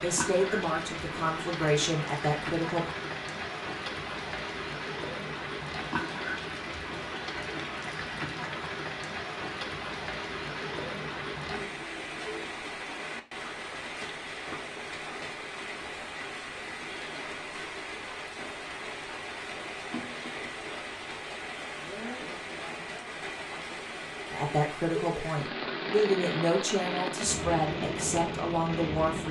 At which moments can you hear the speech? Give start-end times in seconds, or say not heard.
0.0-2.9, 24.3-29.2.